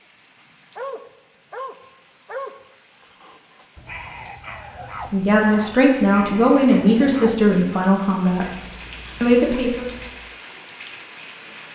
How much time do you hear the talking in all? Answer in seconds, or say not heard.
4 s.